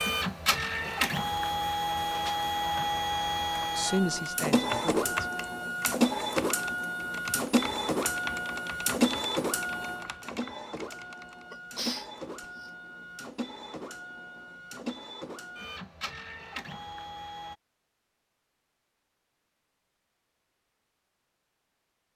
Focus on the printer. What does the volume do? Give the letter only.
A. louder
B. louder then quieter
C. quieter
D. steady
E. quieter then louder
C.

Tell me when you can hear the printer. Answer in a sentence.
The printer can be heard from 0.0 to 17.6 s.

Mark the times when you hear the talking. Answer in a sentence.
You can hear the talking from 3.6 to 5.3 s.